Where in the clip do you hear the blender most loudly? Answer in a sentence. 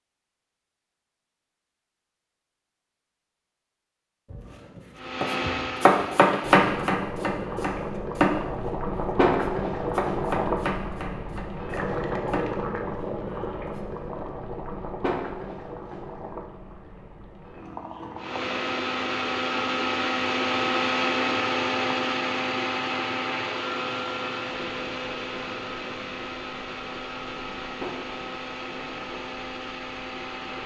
The volume of the blender peaks at 21 seconds.